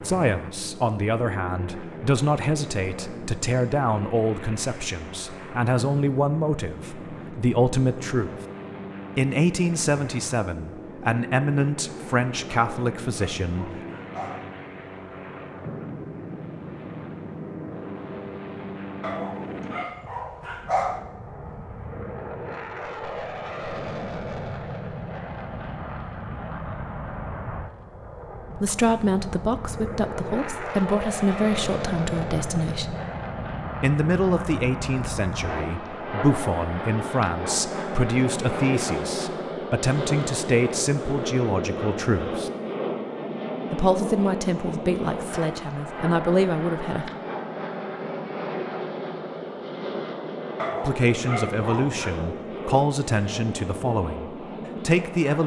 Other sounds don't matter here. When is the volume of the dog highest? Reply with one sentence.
The volume of the dog peaks at 21 seconds.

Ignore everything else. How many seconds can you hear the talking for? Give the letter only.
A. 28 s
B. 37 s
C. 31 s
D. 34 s
D.